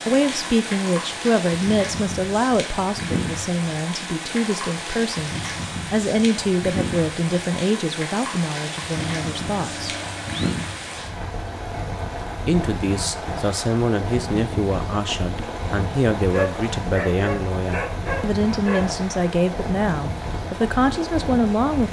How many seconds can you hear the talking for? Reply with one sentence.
The talking can be heard for 19 seconds in total.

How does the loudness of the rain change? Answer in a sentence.
The loudness of the rain stays about the same.